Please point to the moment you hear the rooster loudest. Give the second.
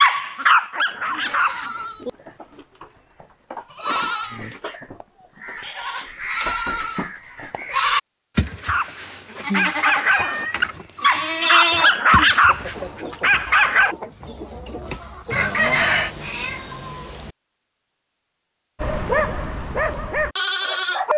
16 s.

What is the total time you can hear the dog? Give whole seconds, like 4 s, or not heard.
9 s.